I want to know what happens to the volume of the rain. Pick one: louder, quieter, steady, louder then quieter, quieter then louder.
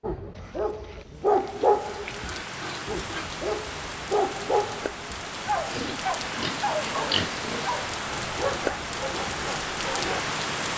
louder.